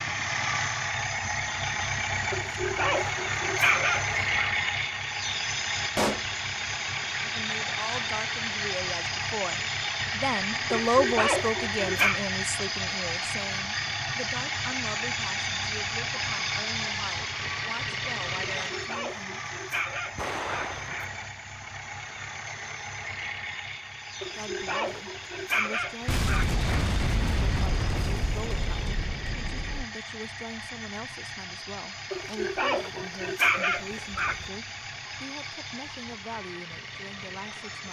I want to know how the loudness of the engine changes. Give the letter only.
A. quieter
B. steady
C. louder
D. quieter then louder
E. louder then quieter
A.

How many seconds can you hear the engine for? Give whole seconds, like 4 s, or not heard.
38 s.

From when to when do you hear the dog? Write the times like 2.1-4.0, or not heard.
2.3-4.5, 10.7-12.2, 18.6-21.1, 24.2-26.9, 32.1-34.5.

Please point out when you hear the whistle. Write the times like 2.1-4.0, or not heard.
not heard.